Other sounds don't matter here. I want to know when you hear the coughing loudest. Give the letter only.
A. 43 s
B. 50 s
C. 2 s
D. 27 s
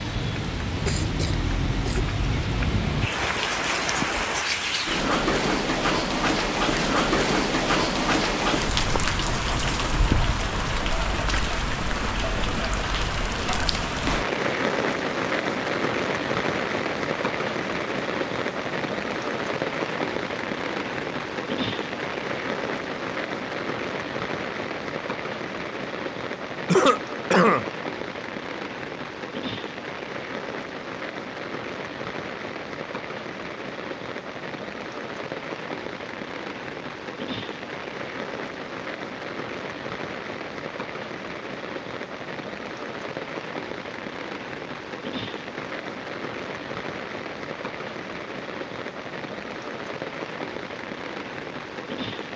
D.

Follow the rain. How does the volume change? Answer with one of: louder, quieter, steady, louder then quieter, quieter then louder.
quieter.